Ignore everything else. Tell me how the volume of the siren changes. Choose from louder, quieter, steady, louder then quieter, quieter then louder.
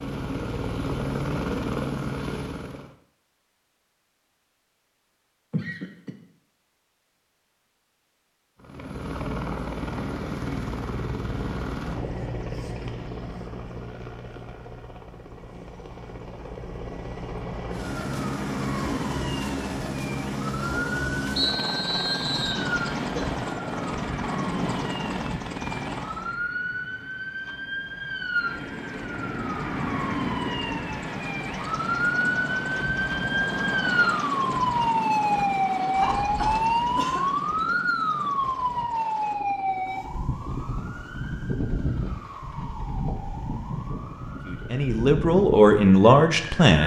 louder then quieter.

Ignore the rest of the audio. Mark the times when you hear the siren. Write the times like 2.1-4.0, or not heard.
17.6-46.7.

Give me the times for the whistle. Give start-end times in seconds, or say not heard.
21.4-22.6.